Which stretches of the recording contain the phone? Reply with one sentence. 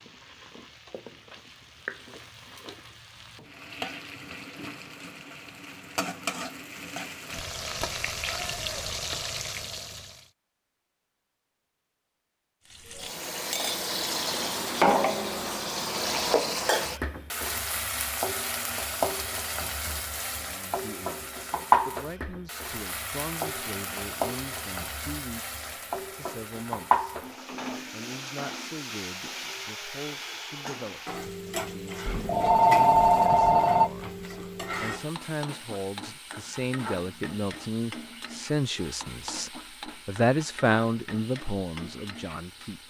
The phone can be heard from 32.0 to 33.9 s.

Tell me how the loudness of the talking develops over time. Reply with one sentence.
The volume of the talking goes up.